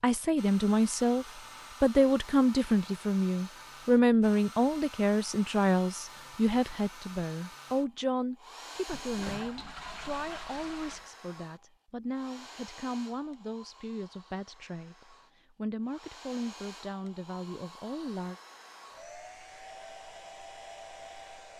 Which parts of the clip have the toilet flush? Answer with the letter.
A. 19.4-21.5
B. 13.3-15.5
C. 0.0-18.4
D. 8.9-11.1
D.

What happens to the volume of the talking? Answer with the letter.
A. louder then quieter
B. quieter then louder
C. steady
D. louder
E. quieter
E.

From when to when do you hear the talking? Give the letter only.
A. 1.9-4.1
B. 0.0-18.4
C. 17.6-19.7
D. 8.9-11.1
B.